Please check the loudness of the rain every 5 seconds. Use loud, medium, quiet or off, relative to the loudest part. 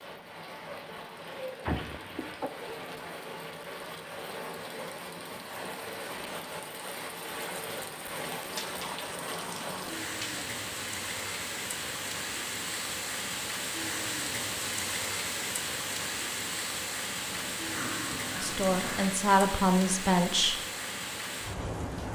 medium, loud, loud, loud, loud.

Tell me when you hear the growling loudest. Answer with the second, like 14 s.
2 s.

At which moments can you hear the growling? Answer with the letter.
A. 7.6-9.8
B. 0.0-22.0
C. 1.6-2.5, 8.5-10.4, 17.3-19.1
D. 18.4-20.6
C.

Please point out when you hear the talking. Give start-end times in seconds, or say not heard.
18.4-20.6.